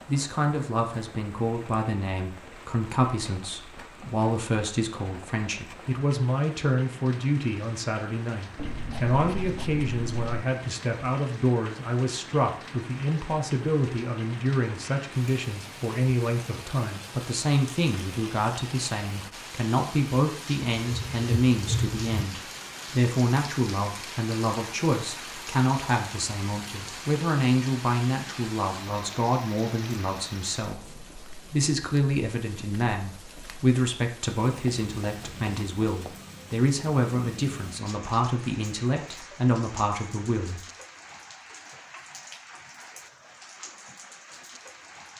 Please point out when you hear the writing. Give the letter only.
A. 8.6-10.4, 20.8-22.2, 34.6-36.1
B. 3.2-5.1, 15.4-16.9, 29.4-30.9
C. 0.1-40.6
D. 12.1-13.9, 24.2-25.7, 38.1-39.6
A.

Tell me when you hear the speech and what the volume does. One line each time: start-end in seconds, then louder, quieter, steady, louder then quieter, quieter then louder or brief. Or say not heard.
0.1-40.6 steady.